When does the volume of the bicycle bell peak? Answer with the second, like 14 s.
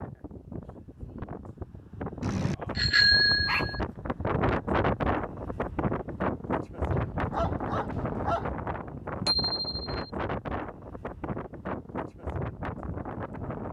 3 s.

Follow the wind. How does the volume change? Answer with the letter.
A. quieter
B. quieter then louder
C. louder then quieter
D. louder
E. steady
C.